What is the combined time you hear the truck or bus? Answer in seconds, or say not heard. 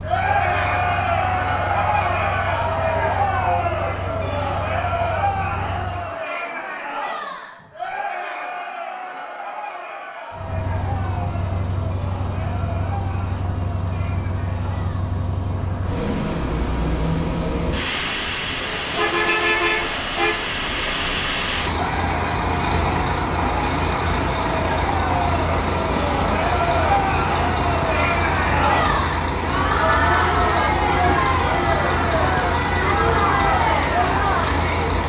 31 s.